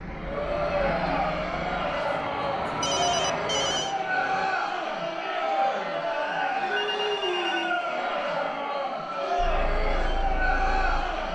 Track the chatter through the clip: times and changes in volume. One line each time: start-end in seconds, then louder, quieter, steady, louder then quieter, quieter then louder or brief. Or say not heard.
0.1-11.3 steady.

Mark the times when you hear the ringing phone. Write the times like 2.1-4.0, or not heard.
2.6-4.0, 6.7-7.8.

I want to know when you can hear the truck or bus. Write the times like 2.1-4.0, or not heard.
0.0-4.5, 9.3-11.3.